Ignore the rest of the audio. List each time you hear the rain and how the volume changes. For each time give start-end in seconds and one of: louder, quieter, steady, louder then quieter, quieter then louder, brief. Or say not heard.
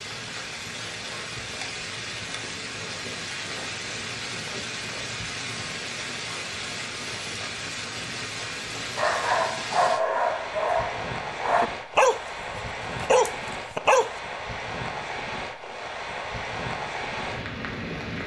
0.0-18.2 steady.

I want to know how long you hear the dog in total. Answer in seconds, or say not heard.
5 s.